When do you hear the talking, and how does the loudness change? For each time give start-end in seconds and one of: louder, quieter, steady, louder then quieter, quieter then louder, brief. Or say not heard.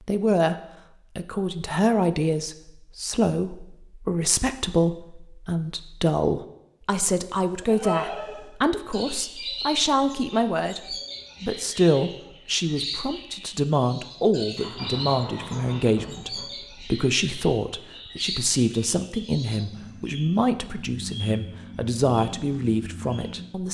0.1-0.6 brief
1.1-23.6 steady.